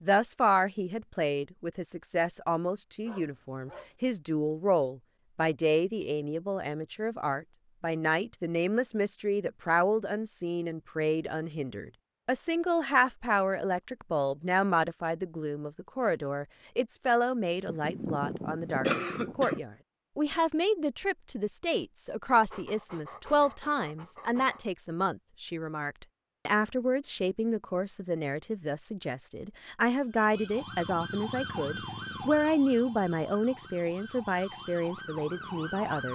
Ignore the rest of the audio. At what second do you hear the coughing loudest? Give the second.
19 s.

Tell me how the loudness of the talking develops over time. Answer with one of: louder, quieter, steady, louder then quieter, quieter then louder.
steady.